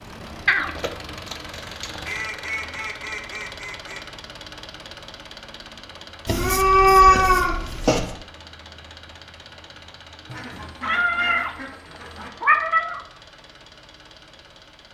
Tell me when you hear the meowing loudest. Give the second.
7 s.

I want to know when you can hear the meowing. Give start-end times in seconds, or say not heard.
0.5-2.0, 6.2-8.1, 10.8-11.5, 12.4-13.0.